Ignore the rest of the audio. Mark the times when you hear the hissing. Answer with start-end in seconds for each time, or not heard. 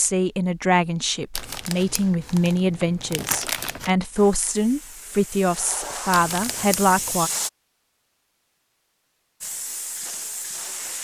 4.2-7.5, 9.4-11.0.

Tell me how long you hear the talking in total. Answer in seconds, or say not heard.
7 s.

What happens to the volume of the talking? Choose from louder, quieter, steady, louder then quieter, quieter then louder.
steady.